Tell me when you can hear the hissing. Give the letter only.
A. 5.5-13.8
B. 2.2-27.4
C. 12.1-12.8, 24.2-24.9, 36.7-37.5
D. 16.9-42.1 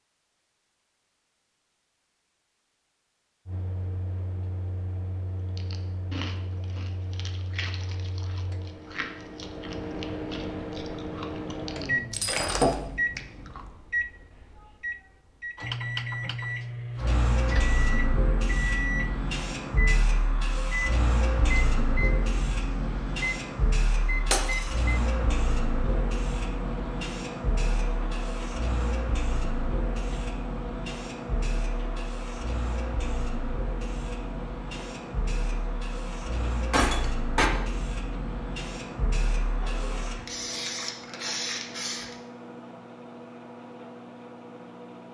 D.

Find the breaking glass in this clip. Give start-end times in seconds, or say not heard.
12.1-12.8, 24.2-24.9, 36.7-37.5.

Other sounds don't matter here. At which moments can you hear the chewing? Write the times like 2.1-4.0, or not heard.
5.5-13.8.